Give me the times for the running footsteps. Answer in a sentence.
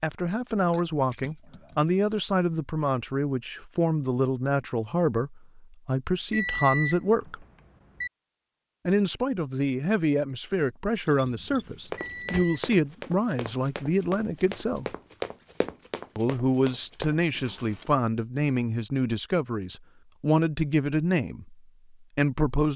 The running footsteps can be heard from 11.8 to 17.2 s.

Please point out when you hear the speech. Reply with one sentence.
You can hear the speech from 0.0 to 7.5 s, from 8.8 to 14.8 s and from 16.1 to 22.7 s.